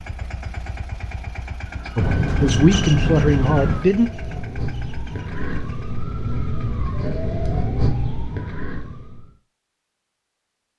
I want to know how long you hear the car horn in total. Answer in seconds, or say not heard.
2 s.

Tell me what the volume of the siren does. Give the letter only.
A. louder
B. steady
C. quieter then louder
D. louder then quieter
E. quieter
A.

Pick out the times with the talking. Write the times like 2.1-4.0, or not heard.
1.9-4.1.